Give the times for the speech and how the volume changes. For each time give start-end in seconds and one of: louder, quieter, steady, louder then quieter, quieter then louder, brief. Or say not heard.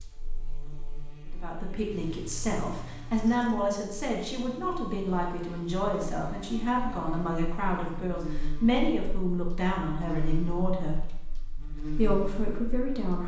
1.3-11.0 steady
11.9-13.2 brief.